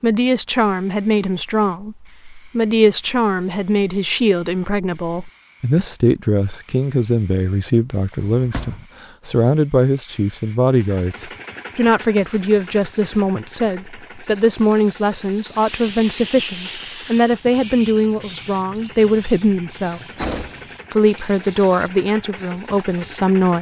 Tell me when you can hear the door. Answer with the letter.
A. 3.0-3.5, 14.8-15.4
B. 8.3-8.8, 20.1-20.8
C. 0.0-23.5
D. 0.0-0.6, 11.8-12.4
B.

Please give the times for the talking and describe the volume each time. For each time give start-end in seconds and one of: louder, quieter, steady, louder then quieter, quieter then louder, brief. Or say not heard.
0.0-23.5 steady.